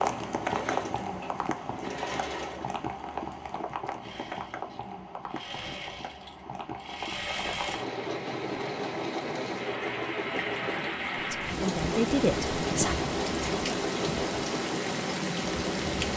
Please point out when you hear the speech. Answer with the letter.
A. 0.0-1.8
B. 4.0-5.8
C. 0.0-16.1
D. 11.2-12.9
D.